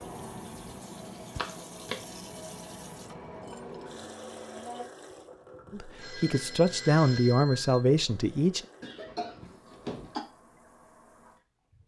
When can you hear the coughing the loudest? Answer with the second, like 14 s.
10 s.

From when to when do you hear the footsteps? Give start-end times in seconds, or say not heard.
not heard.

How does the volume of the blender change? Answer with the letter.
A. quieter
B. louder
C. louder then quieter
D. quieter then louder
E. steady
E.